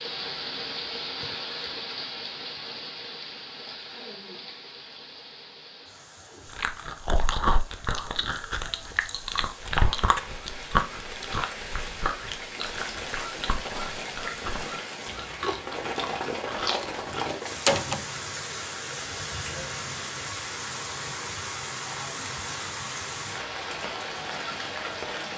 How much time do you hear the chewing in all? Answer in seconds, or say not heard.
11 s.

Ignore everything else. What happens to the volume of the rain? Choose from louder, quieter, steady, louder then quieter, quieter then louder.
quieter then louder.